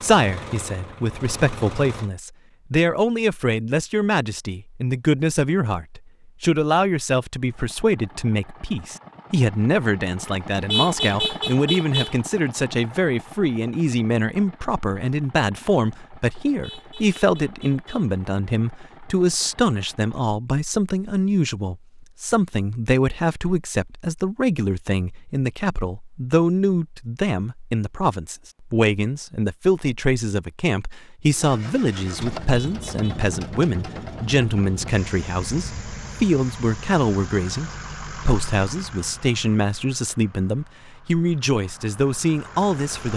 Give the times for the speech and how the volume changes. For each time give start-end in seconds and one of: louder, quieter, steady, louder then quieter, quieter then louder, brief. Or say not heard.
0.0-43.1 steady.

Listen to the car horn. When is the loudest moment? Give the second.
11 s.